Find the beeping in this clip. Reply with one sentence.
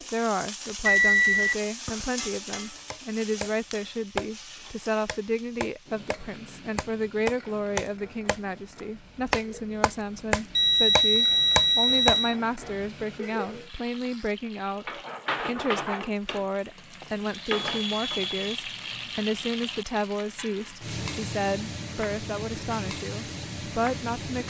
The beeping can be heard from 0.8 to 2.0 s, from 10.6 to 12.3 s and from 16.8 to 18.6 s.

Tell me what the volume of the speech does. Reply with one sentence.
The volume of the speech stays about the same.